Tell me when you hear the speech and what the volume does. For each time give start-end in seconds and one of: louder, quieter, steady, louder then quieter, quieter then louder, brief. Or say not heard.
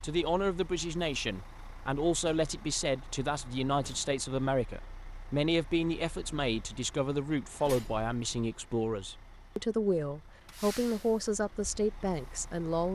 0.0-12.9 steady.